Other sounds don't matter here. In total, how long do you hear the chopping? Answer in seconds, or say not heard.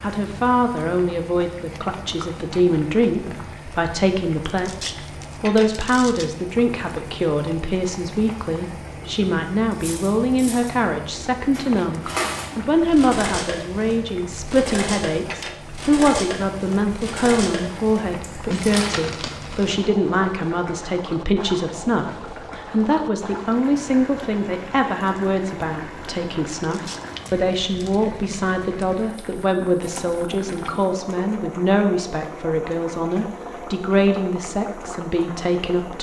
not heard.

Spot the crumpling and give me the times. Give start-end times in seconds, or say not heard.
4.5-6.3, 18.5-19.9, 26.6-28.0.